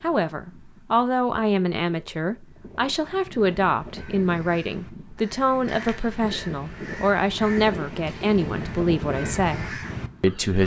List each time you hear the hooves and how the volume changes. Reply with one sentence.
The hooves can't be heard in this clip.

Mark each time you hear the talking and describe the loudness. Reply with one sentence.
You can hear the talking from 0.0 to 10.6 s, at a steady volume.